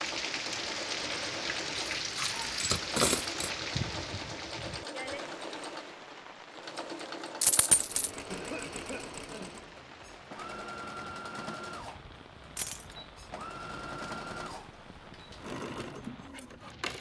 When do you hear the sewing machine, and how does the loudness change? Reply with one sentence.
The sewing machine can be heard from 0.0 to 16.9 s, at a steady volume.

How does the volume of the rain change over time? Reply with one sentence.
The loudness of the rain goes down.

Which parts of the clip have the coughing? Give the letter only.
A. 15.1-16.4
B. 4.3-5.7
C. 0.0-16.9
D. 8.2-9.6
D.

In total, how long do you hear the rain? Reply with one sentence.
The rain can be heard for 17 seconds in total.